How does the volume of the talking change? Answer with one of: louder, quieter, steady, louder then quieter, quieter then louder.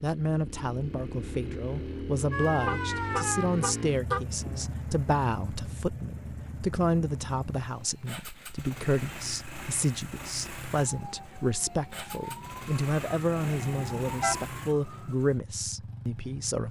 steady.